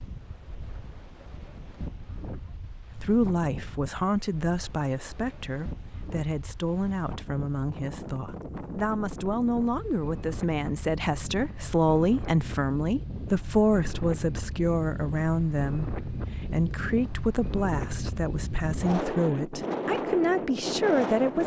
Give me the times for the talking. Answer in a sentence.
You can hear the talking from 3.0 to 21.4 s.